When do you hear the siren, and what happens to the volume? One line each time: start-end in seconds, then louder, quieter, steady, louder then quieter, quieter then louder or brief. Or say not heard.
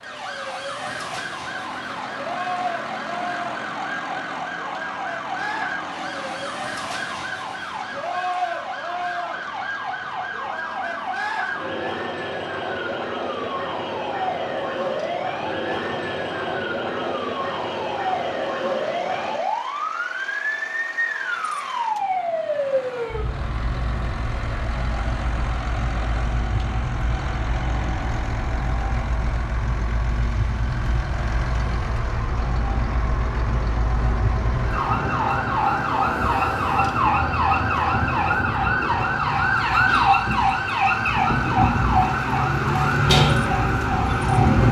0.0-44.6 louder.